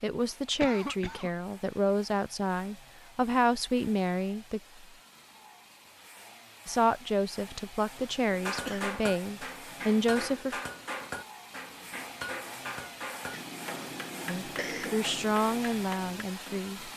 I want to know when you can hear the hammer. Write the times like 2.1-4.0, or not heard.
8.3-16.6.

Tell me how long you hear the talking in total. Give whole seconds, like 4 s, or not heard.
11 s.